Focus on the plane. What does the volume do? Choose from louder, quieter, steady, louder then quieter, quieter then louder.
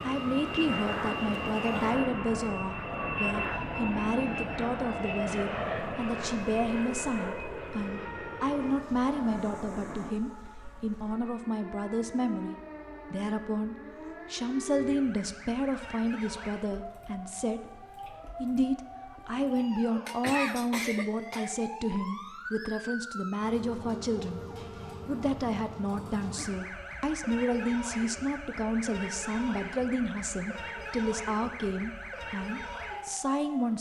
quieter.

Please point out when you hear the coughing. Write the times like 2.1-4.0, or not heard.
20.1-21.6.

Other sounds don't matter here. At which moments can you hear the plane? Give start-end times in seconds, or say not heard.
0.0-10.2.